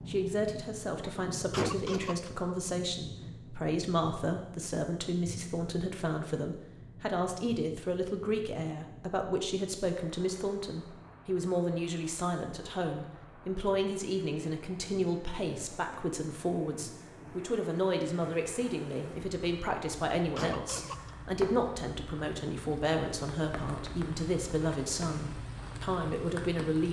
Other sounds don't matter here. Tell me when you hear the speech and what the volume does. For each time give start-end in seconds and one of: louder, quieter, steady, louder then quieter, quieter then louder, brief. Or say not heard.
0.1-26.8 steady.